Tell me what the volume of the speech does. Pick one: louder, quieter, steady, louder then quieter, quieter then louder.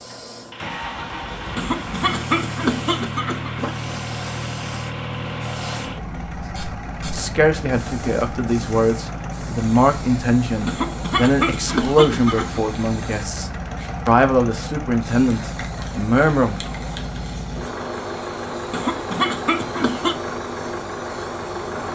steady.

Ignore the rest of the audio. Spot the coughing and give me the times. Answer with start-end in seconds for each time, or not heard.
1.6-3.8, 10.7-12.6, 18.7-20.1.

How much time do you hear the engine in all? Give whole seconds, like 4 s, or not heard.
22 s.